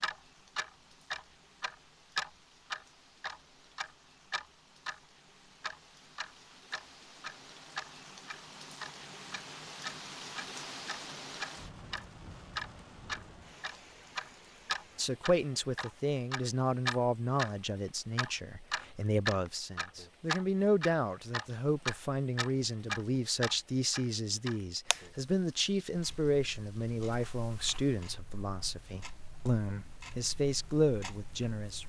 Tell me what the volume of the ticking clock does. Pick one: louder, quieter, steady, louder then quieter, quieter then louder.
quieter.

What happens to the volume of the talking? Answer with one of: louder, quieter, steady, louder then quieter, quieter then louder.
steady.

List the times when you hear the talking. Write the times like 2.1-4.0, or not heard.
14.9-31.8.